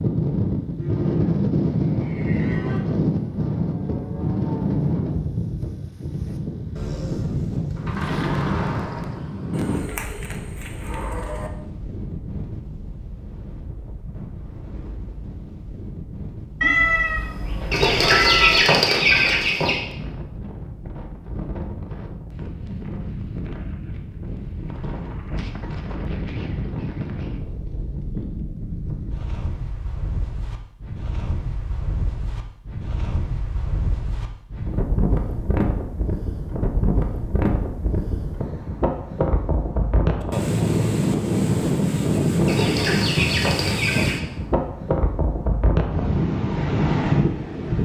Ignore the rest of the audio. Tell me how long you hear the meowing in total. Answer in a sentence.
The meowing can be heard for 2 seconds in total.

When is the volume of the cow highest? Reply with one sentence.
The volume of the cow peaks at 8 seconds.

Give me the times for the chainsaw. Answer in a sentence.
The chainsaw can't be heard in this clip.